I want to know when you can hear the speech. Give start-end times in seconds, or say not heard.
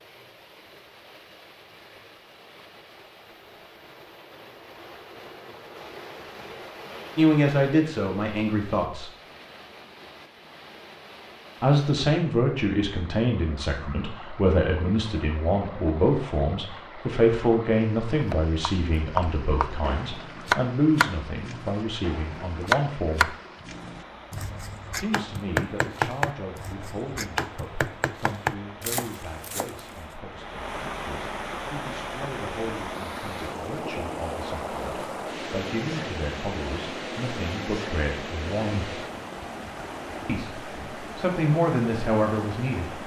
7.2-9.1, 11.6-23.4, 24.9-39.0, 40.2-42.9.